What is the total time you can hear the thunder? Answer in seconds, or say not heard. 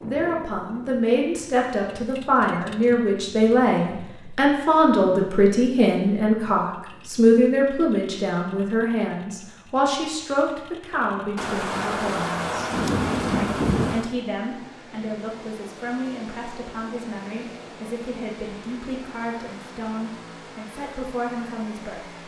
3 s.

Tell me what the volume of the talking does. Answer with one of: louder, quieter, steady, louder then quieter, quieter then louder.
quieter.